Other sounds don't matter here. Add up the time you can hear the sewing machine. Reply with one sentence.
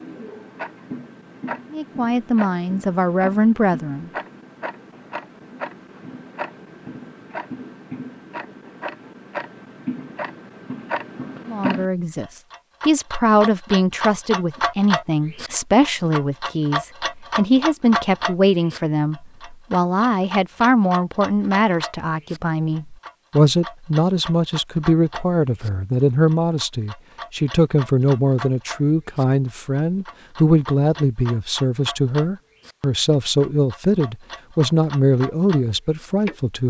The sewing machine can't be heard in this clip.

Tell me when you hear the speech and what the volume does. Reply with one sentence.
You can hear the speech briefly from 1.7 to 4.1 s; and from 11.4 to 36.6 s, at a steady volume.